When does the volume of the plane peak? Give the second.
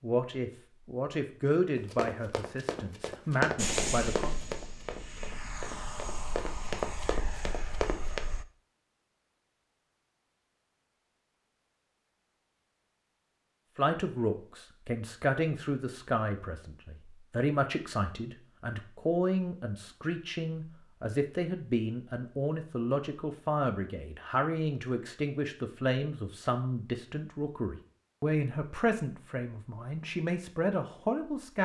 4 s.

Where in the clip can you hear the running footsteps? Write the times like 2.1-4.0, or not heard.
1.8-8.2.